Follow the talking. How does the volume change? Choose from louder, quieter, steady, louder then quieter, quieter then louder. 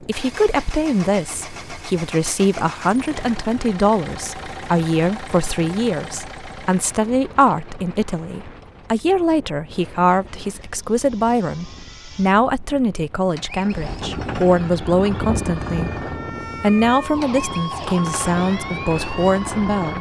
steady.